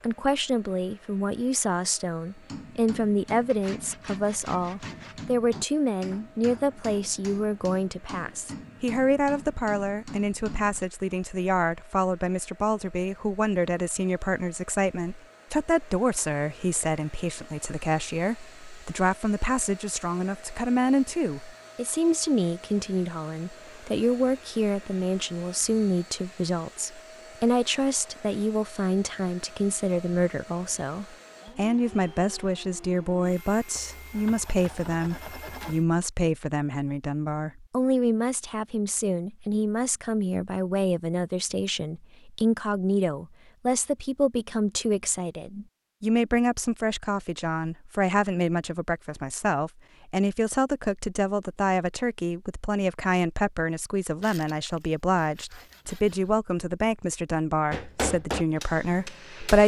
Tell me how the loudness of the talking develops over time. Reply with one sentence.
The volume of the talking stays about the same.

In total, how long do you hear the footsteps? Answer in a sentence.
The footsteps can't be heard in this clip.